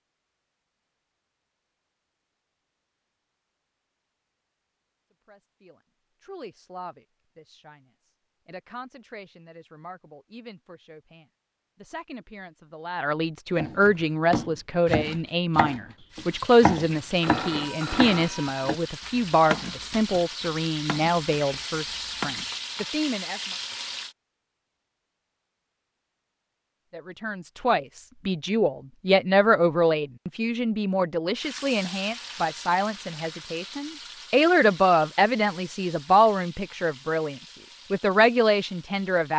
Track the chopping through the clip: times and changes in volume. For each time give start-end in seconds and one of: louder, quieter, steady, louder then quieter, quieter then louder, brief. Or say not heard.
13.6-22.4 quieter.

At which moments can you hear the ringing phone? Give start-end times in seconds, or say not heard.
16.8-18.6.